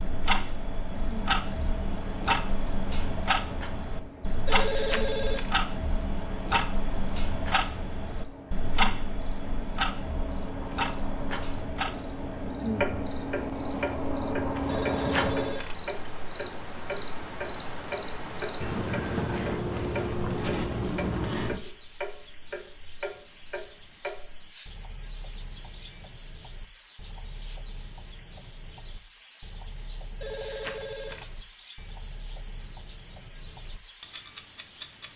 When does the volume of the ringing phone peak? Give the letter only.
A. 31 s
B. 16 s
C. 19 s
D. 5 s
D.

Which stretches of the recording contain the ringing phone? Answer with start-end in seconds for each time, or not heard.
4.5-5.5, 14.7-16.1, 30.2-31.2.